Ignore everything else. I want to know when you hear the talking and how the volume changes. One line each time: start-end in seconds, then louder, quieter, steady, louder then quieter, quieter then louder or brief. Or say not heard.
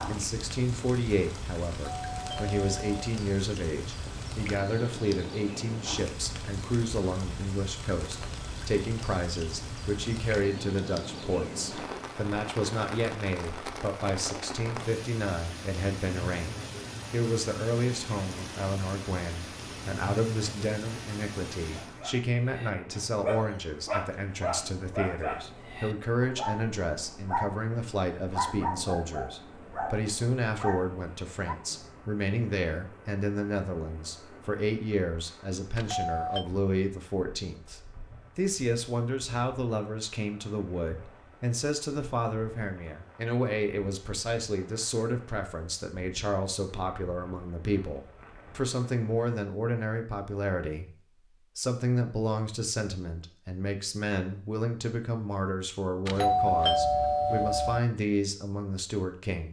0.1-59.4 steady.